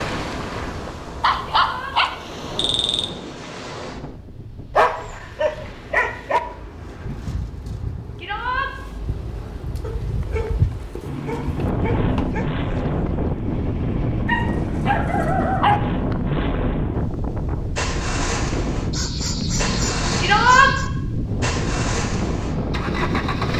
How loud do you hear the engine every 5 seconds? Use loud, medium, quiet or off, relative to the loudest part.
off, off, loud, loud, loud.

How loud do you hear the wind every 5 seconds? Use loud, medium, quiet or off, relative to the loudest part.
medium, medium, loud, loud, loud.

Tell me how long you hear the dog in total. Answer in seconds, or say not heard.
10 s.